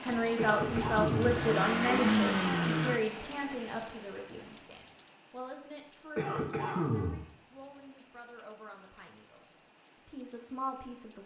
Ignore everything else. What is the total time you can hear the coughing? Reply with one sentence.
You can hear the coughing for 2 seconds altogether.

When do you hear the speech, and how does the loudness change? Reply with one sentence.
The speech can be heard from 0.0 to 11.2 s, getting quieter then louder.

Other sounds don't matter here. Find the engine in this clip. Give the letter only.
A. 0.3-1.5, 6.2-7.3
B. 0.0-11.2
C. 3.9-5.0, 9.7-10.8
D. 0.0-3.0
D.